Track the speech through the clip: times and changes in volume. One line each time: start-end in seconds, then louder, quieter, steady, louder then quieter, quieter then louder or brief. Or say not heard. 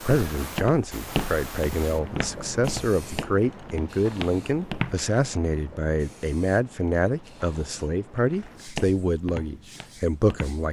0.0-10.6 steady.